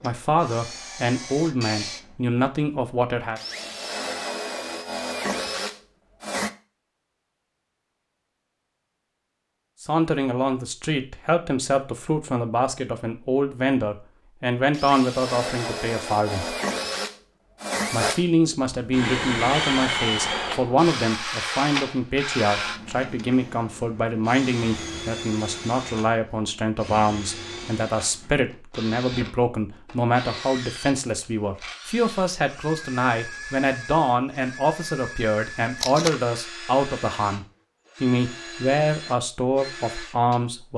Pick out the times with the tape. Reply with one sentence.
You can hear the tape from 35.8 to 36.2 s.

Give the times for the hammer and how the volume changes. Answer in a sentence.
The hammer can't be heard in this clip.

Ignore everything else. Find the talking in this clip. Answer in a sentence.
The talking can be heard from 0.0 to 3.4 s, from 9.8 to 16.6 s and from 17.9 to 40.7 s.